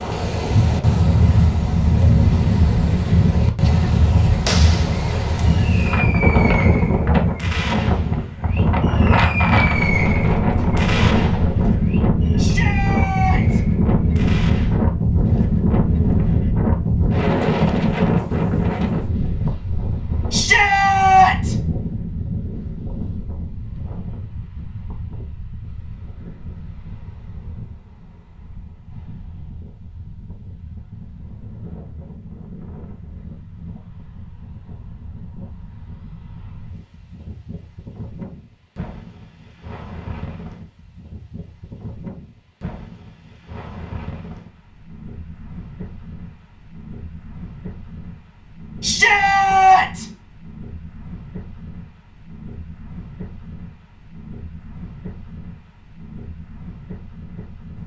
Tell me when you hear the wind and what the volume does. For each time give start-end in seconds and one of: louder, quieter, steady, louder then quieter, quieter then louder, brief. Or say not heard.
0.0-57.8 quieter.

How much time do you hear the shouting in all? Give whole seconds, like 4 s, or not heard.
4 s.